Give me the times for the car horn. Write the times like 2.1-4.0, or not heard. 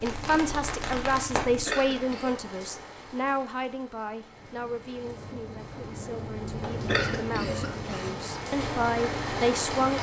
not heard.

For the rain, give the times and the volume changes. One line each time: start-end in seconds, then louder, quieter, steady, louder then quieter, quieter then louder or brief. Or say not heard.
0.0-9.9 quieter then louder.